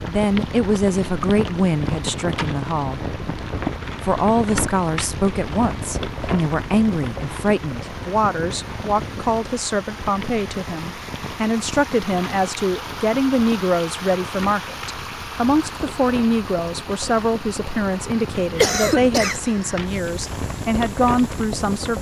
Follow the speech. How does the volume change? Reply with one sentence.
The volume of the speech stays about the same.